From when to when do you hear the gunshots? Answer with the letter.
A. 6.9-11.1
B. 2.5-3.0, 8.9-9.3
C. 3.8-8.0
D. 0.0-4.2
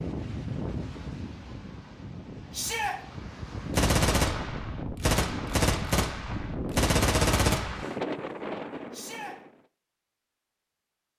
C.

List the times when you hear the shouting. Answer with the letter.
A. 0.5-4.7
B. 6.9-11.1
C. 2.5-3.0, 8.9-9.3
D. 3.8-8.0
C.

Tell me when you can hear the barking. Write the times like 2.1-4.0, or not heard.
not heard.